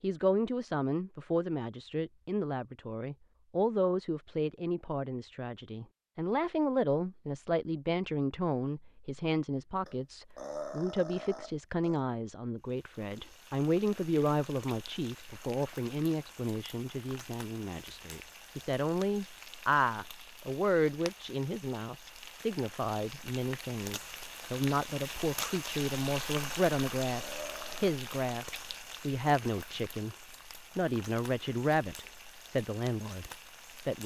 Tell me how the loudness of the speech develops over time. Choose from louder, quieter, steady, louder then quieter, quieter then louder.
steady.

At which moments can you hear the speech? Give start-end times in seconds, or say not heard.
0.0-30.1, 30.8-34.0.